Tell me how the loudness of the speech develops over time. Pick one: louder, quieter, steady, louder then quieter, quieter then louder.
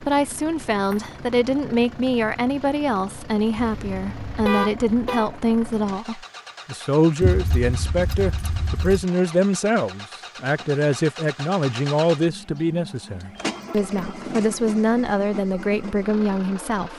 steady.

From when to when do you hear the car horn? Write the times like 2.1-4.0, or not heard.
3.5-5.3.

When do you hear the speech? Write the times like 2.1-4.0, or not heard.
0.0-16.9.